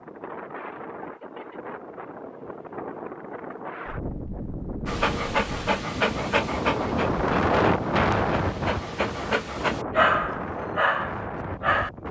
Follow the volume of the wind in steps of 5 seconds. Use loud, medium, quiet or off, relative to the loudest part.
medium, loud, medium.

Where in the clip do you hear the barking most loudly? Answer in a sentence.
The volume of the barking peaks at 10 seconds.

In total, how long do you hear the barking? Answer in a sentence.
The barking can be heard for 7 seconds in total.